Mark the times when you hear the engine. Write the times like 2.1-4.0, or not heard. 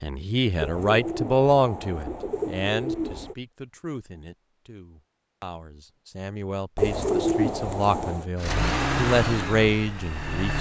8.3-10.5.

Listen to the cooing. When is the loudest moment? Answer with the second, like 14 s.
7 s.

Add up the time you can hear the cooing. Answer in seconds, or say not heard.
4 s.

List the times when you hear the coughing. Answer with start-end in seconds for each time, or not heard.
not heard.